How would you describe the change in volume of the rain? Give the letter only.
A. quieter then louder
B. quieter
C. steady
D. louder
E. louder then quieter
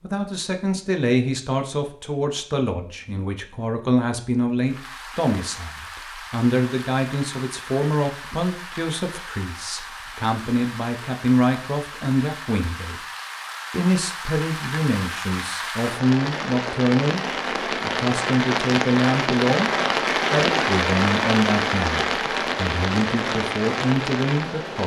D.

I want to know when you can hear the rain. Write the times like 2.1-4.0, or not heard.
4.7-24.8.